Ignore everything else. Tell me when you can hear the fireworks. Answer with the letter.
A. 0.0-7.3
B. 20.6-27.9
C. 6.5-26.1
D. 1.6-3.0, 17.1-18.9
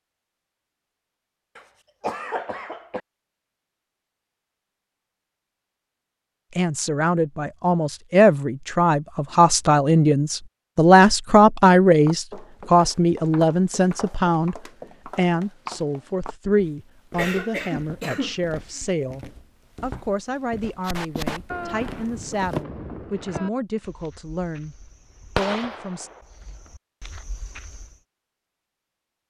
B.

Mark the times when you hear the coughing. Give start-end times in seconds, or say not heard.
1.6-3.0, 17.1-18.9.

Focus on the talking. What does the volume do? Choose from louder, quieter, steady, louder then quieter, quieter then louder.
quieter.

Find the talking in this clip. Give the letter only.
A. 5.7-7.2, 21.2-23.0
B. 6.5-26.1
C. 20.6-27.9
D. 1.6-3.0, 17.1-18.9
B.